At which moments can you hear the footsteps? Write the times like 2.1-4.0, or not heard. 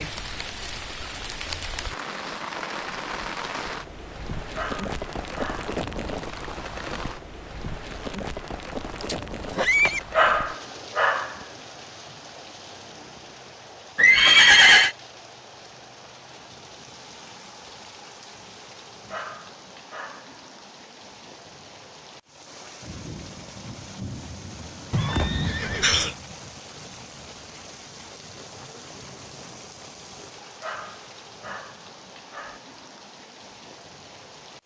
not heard.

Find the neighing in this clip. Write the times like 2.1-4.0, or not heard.
9.0-10.0, 13.9-14.9, 24.9-26.1.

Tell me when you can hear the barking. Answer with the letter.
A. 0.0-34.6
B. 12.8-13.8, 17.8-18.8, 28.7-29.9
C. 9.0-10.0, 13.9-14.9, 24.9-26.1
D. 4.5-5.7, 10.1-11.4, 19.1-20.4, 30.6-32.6
D.